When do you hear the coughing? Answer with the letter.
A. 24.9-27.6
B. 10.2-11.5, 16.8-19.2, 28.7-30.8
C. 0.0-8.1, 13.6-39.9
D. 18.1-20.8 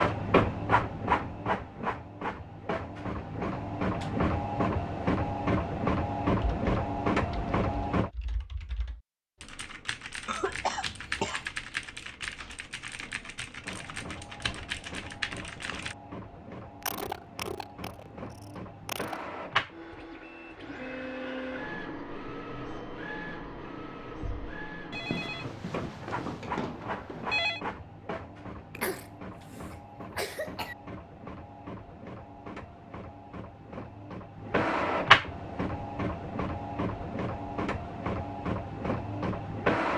B.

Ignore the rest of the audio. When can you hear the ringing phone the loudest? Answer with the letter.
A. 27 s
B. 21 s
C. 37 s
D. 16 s
A.